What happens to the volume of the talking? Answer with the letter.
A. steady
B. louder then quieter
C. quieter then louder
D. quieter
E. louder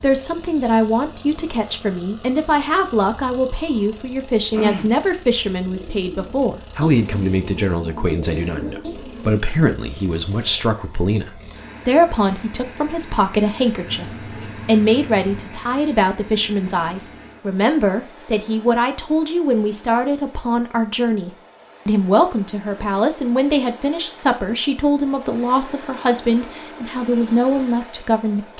A.